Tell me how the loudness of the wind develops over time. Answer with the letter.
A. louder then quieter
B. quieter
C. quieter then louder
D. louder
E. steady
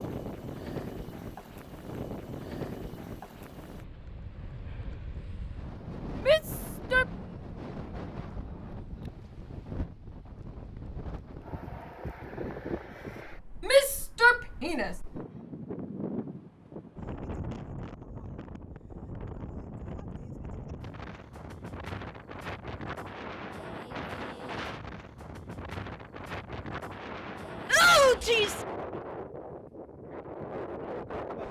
E.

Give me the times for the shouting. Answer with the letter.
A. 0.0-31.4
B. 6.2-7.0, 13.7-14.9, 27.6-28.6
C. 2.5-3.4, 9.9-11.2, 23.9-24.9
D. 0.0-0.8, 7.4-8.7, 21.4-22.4
B.